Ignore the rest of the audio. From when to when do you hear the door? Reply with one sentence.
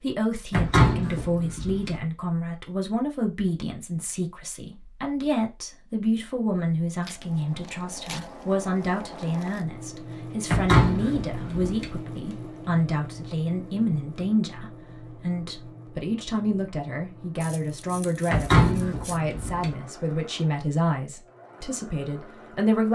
You can hear the door from 0.5 to 1.9 s, from 10.5 to 11.9 s and from 18.3 to 19.7 s.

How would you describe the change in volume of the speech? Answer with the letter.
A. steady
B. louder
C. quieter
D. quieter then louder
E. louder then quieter
A.